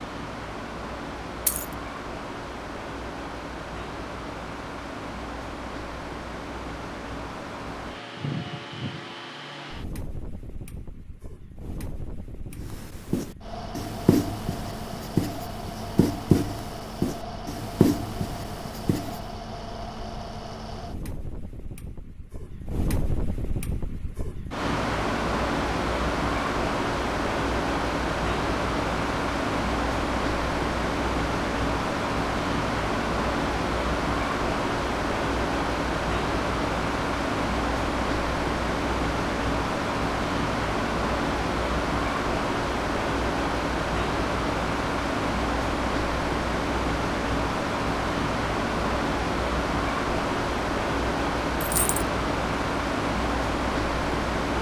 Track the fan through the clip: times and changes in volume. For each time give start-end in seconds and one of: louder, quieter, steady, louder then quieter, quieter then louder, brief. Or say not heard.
0.0-54.5 louder.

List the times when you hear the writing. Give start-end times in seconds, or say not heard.
12.6-19.2.